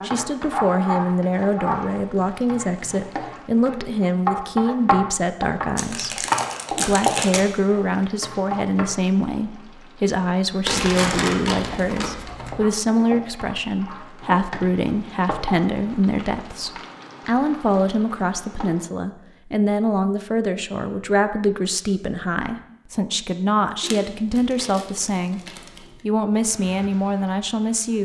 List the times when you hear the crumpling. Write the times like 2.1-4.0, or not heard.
5.8-7.5, 10.7-12.6, 23.8-25.9.